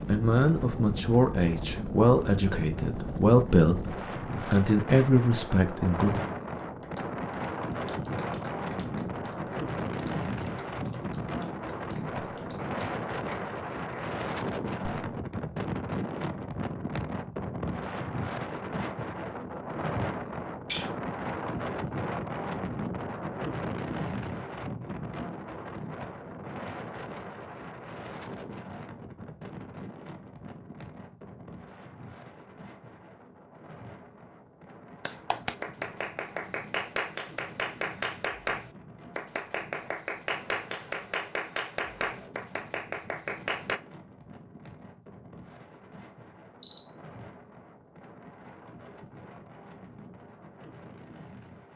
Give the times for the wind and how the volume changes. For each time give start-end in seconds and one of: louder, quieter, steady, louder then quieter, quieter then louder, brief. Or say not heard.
0.0-51.7 quieter.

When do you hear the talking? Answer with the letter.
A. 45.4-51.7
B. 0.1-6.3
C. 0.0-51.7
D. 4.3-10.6
B.